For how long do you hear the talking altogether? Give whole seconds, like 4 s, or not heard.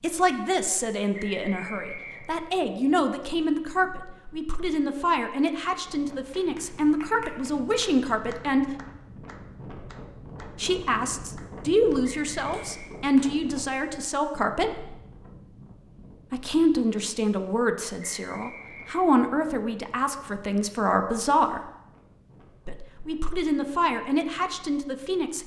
21 s.